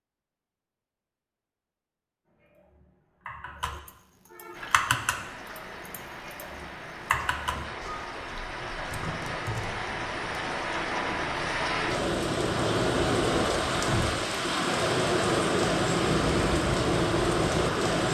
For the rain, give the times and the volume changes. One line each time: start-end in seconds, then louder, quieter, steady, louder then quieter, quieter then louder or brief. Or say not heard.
4.5-18.0 louder.